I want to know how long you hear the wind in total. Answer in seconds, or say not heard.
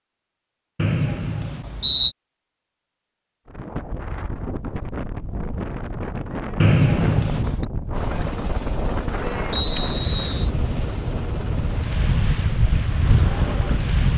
11 s.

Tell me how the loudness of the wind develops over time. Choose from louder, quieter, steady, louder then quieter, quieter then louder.
louder.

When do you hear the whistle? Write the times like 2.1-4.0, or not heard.
0.8-2.1, 6.6-7.7, 9.5-10.5.